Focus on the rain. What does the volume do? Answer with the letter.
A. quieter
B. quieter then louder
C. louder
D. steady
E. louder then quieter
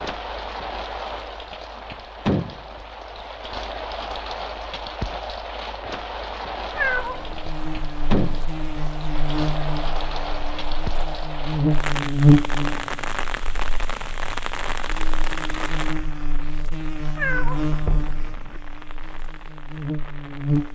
A.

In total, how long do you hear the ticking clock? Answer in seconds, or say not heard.
not heard.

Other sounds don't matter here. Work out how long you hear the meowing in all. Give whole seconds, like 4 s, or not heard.
2 s.